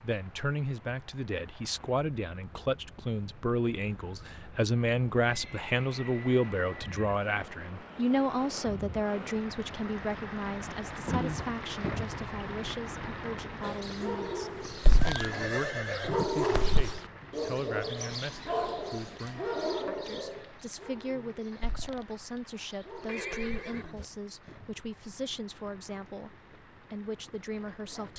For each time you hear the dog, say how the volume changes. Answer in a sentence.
You can hear the dog briefly from 13.6 to 15.3 s; from 15.9 to 22.1 s, getting quieter; and briefly from 22.7 to 24.1 s.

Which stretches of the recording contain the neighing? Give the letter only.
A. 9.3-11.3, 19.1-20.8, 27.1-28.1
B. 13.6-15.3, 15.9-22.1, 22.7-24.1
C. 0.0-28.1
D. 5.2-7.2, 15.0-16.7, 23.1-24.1
D.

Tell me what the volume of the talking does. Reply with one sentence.
The volume of the talking goes down.